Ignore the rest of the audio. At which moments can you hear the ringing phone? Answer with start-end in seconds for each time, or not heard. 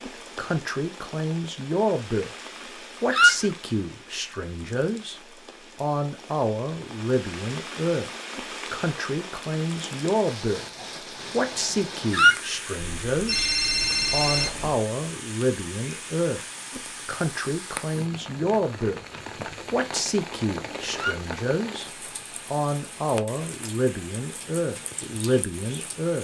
12.8-14.8.